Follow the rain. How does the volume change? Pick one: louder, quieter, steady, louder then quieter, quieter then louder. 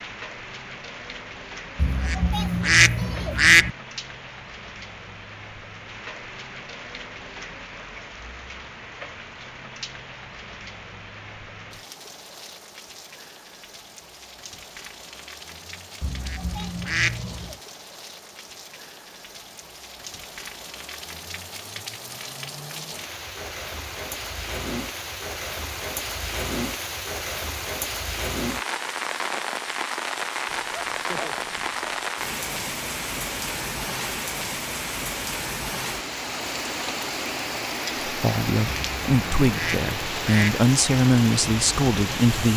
louder.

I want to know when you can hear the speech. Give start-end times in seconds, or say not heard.
38.0-42.5.